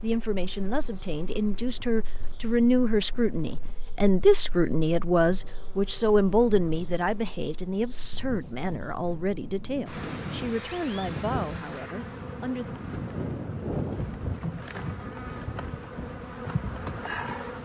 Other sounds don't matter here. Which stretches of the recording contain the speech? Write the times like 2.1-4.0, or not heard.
0.0-12.8.